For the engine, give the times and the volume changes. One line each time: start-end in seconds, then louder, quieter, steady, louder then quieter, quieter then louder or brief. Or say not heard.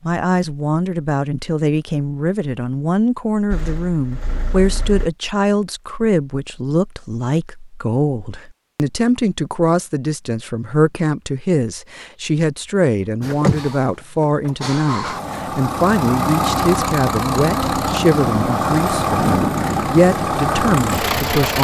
3.5-5.1 brief
13.2-21.5 louder.